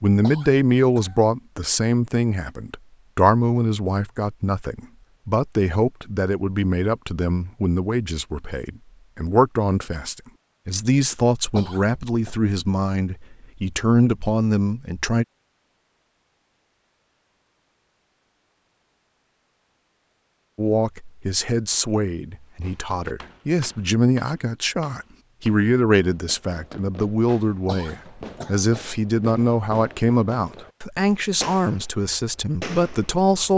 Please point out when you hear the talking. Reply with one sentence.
The talking can be heard from 0.0 to 15.2 s and from 20.6 to 33.5 s.